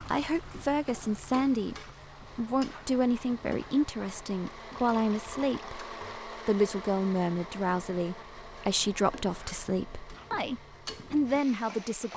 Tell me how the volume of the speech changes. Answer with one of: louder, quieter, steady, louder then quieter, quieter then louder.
steady.